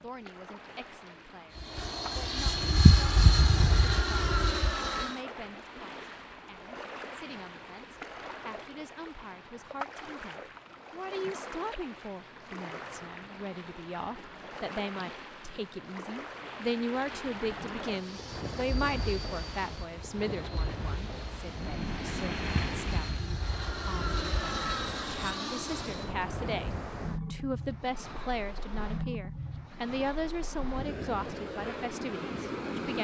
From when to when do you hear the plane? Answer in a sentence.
You can hear the plane from 1.6 to 5.2 s and from 17.9 to 26.1 s.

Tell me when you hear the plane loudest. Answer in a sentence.
The volume of the plane peaks at 3 seconds.